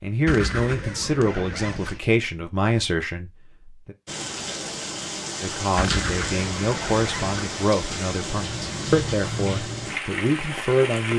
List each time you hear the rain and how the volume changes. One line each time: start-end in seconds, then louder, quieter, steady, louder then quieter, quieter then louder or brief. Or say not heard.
4.0-11.1 steady.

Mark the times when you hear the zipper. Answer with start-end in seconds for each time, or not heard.
0.2-2.0, 5.8-7.5.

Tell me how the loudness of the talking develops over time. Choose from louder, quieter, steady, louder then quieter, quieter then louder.
steady.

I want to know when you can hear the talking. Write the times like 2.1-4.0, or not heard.
0.0-4.0, 5.4-11.1.